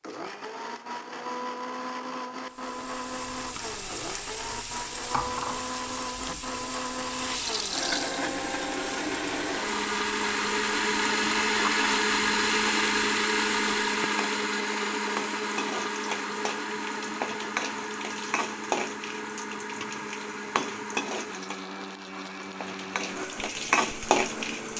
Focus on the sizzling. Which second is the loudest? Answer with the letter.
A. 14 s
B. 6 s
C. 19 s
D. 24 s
D.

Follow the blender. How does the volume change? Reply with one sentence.
The volume of the blender goes up, then down.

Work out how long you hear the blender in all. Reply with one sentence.
The blender can be heard for 25 seconds in total.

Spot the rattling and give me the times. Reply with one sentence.
The rattling can be heard from 7.3 to 8.2 s.